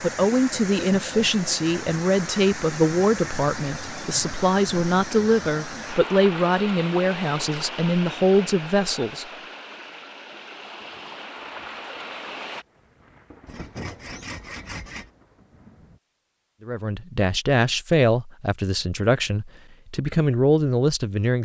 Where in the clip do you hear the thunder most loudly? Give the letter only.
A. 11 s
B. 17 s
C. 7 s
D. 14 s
D.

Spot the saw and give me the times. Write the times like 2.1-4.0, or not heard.
13.4-15.1.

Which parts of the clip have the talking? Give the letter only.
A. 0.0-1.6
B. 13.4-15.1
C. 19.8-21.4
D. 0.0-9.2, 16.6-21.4
D.